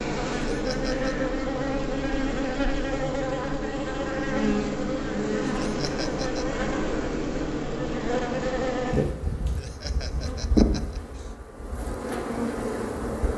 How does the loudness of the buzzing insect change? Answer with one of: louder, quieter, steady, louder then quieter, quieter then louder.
steady.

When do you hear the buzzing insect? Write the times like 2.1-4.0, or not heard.
0.0-13.3.